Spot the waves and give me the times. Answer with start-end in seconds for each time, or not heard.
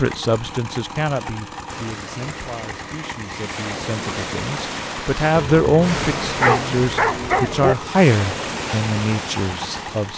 1.6-10.1.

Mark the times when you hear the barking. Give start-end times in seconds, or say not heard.
5.3-7.8.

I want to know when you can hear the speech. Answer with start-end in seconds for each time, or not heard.
0.0-10.1.